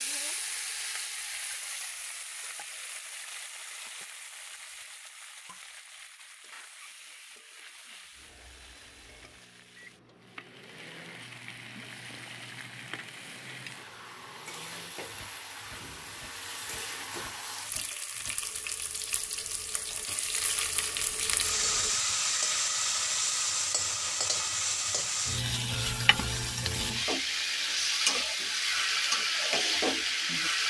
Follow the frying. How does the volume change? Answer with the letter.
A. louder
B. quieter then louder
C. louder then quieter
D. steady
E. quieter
B.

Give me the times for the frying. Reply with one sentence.
The frying can be heard from 0.0 to 30.6 s.